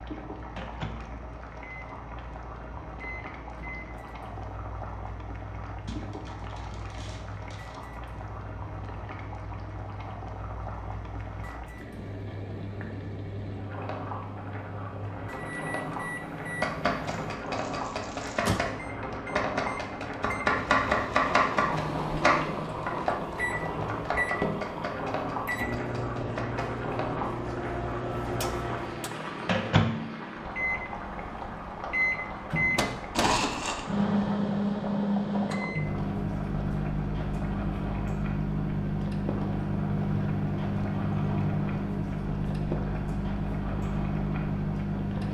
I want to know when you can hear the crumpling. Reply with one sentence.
You can hear the crumpling from 5.8 to 7.8 s, from 17.1 to 18.4 s and from 33.1 to 33.9 s.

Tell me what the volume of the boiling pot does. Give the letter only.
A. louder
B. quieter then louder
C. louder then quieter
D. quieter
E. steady
C.